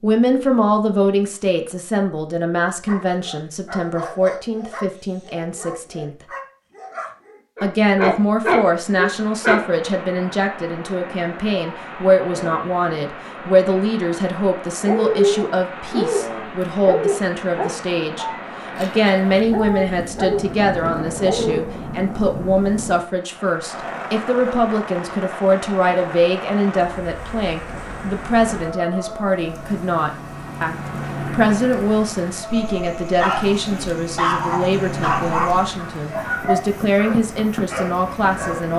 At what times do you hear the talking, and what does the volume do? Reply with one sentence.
You can hear the talking from 0.0 to 6.2 s, getting quieter; and from 7.6 to 38.7 s, at a steady volume.